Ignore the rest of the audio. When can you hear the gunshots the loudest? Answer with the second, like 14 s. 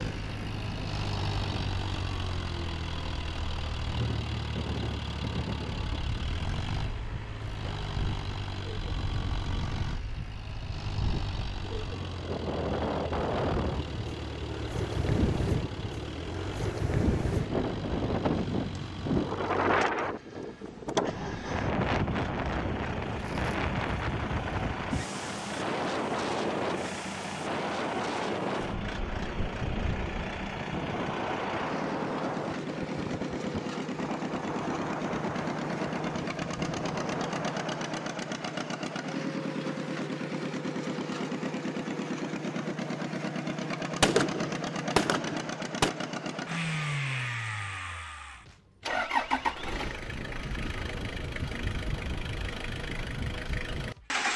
44 s.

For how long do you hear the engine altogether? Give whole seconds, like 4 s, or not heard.
54 s.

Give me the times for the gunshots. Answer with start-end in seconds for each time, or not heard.
44.0-45.9.